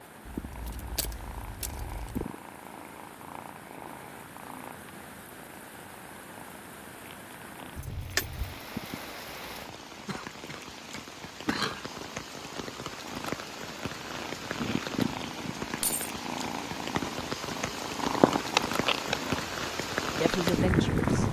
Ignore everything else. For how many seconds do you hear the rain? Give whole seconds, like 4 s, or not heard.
21 s.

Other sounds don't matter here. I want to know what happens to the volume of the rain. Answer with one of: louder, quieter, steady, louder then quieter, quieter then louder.
louder.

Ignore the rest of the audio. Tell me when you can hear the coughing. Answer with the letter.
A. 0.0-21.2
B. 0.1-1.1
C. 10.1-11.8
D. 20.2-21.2
C.